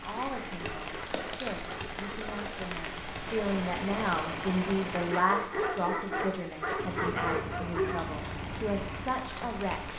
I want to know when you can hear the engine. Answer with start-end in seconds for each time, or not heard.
3.2-5.2, 6.8-9.9.